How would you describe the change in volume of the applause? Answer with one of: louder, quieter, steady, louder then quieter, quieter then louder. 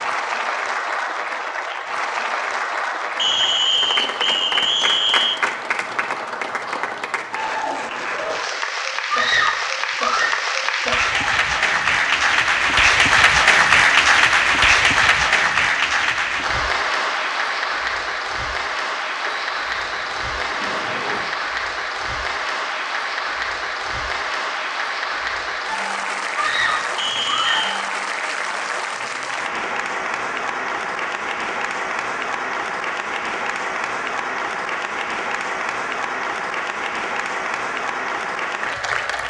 louder then quieter.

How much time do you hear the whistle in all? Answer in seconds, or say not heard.
5 s.